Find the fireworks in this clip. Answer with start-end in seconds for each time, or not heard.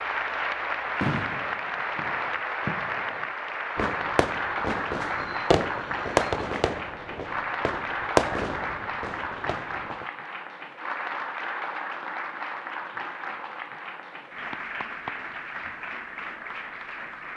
0.9-10.1.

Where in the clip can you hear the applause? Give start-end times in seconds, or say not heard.
0.0-17.3.